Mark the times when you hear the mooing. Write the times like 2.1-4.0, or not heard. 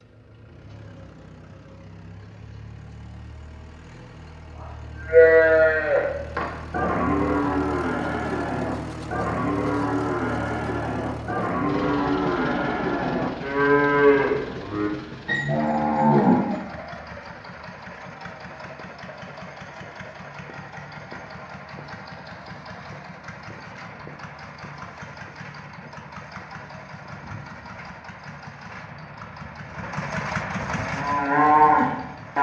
4.6-16.9, 30.6-32.3.